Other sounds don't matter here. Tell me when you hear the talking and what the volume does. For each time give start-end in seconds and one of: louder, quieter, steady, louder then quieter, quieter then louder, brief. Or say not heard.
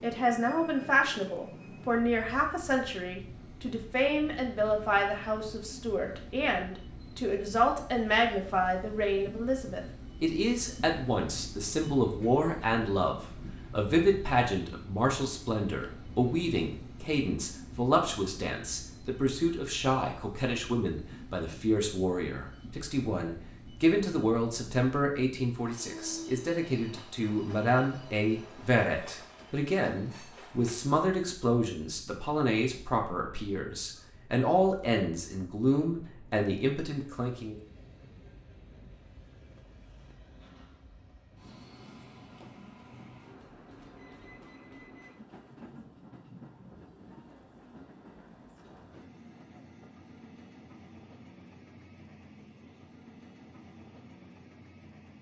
0.0-37.5 steady.